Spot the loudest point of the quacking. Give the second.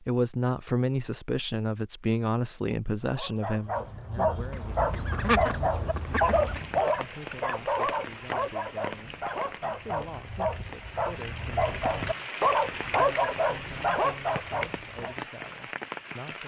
5 s.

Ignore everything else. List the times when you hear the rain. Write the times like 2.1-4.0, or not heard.
6.1-16.4.